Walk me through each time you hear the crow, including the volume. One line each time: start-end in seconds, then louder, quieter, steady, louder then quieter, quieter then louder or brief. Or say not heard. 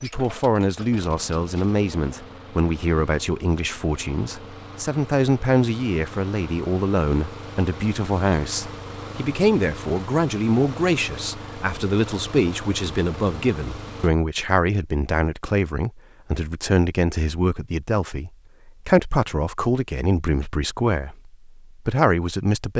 not heard.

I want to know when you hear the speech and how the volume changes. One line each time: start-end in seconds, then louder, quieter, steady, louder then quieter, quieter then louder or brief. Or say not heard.
0.0-22.7 steady.